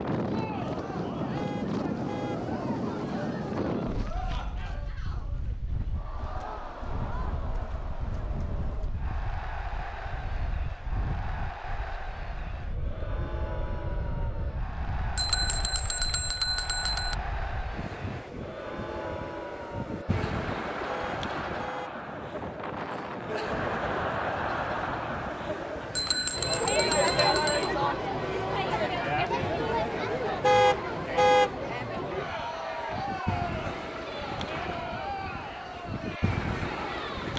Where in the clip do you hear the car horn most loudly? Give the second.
31 s.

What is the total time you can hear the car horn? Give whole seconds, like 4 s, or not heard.
3 s.